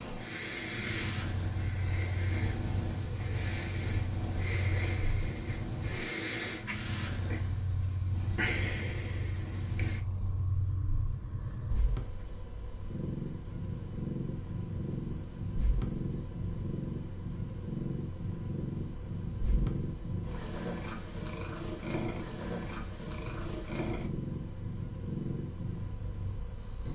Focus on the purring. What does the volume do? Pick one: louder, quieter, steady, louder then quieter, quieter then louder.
steady.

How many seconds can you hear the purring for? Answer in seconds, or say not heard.
27 s.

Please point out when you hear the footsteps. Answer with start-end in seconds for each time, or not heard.
not heard.